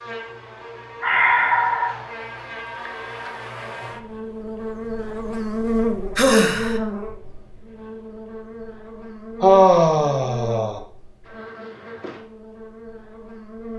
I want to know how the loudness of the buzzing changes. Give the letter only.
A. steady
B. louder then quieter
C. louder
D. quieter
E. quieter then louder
B.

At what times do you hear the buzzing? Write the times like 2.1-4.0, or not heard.
0.0-13.7.